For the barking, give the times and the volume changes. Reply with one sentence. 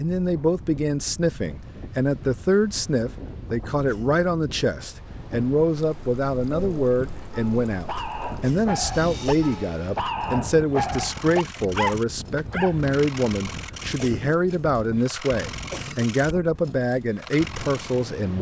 The barking can be heard from 6.5 to 12.8 s, getting louder.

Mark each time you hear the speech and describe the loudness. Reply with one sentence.
The speech can be heard from 0.0 to 18.3 s, at a steady volume.